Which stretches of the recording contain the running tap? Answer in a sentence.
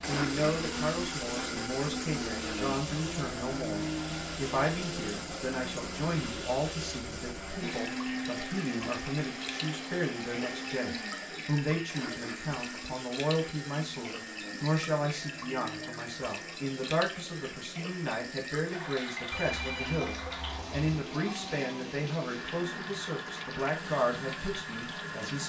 You can hear the running tap from 0.0 to 25.4 s.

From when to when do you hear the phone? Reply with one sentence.
The phone can be heard from 19.3 to 20.9 s.